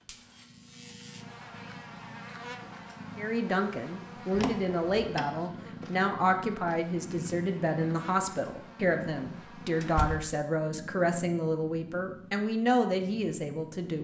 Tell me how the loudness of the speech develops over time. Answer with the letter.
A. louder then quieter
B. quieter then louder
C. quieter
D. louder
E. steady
E.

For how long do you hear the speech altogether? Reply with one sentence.
The speech can be heard for 11 seconds in total.